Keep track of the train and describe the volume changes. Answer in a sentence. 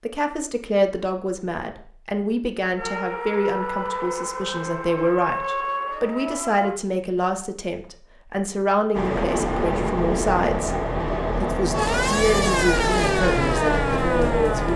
The loudness of the train stays about the same.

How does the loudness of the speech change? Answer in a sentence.
The volume of the speech stays about the same.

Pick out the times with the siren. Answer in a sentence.
The siren can be heard from 2.8 to 6.8 s and from 11.7 to 14.7 s.